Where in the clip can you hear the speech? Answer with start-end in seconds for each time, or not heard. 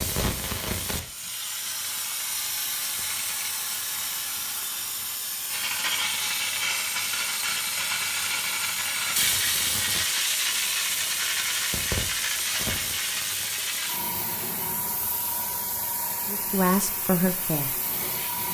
16.2-17.8.